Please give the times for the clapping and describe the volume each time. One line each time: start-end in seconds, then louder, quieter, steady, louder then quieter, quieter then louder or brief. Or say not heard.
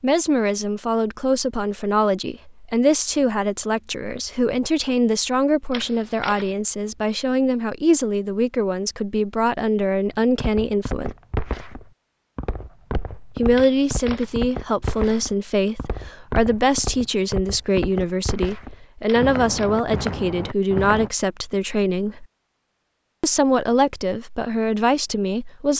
not heard.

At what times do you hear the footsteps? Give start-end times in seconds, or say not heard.
10.2-21.1.